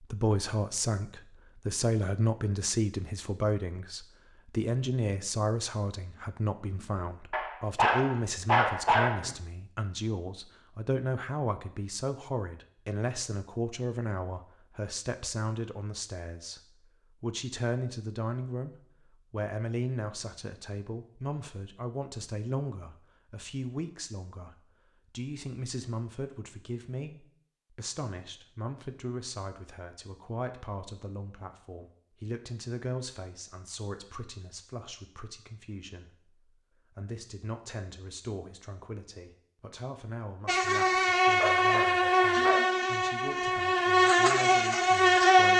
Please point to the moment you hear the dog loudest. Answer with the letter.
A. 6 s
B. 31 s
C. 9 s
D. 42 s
C.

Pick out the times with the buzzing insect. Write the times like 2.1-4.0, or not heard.
40.5-45.5.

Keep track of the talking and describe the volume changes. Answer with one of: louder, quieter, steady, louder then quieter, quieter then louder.
quieter.